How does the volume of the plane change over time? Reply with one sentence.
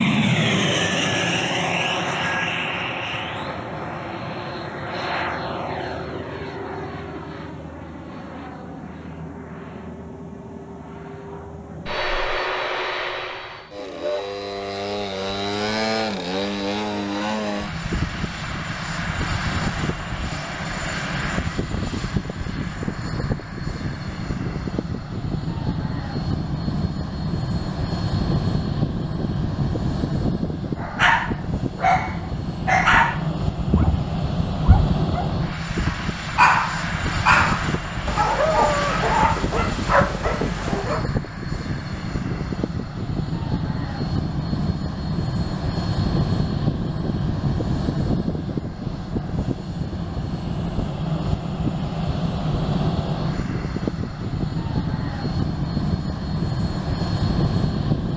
The volume of the plane stays about the same.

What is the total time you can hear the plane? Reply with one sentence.
The plane can be heard for 58 seconds in total.